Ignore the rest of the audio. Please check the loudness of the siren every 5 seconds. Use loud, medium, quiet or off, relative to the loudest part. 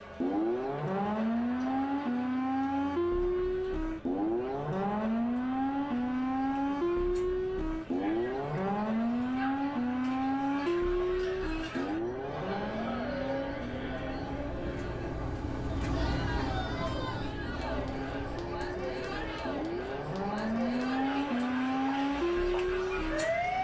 loud, loud, loud, medium, loud.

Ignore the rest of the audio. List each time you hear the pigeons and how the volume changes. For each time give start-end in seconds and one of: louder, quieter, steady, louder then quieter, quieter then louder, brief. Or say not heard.
not heard.